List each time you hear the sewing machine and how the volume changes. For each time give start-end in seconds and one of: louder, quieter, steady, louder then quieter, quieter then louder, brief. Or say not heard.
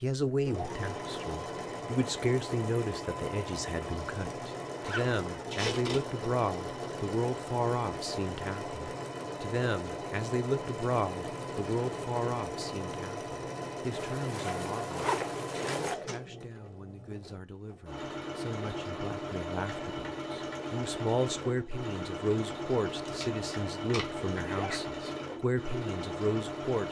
0.5-26.8 steady.